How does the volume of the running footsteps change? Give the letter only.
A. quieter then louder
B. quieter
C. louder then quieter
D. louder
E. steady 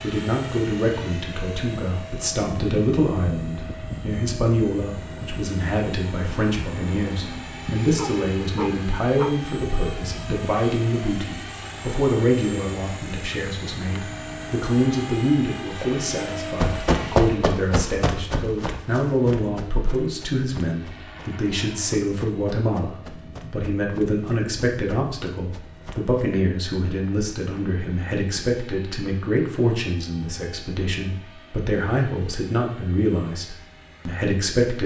B.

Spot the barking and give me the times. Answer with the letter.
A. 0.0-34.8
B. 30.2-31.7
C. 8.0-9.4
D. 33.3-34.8
C.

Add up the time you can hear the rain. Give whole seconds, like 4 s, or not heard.
not heard.